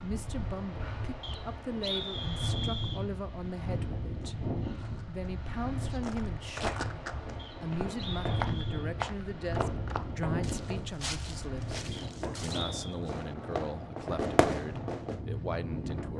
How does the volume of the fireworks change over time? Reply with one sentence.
The volume of the fireworks goes up.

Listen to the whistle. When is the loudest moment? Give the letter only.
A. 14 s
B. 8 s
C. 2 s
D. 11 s
C.